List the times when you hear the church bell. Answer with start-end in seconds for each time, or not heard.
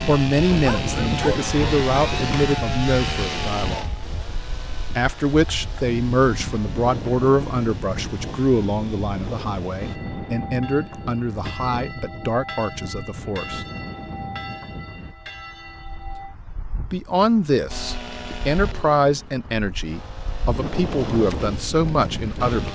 9.8-16.4.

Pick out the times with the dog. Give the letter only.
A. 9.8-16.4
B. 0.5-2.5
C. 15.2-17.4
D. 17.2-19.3
B.